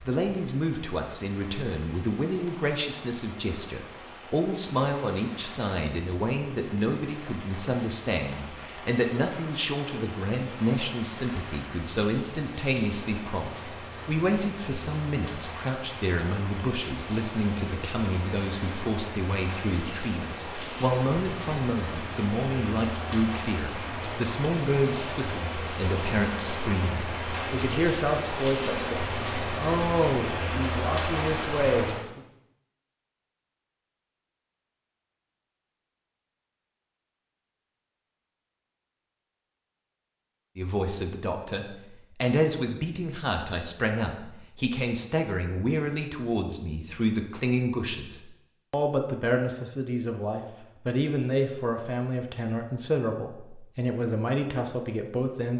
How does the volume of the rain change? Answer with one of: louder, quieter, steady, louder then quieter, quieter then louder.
louder.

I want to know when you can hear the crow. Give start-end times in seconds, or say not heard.
not heard.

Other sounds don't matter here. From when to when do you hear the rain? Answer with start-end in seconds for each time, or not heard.
0.0-32.0.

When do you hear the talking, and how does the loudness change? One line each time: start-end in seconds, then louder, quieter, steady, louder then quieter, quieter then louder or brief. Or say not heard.
0.0-32.2 steady
40.5-55.5 steady.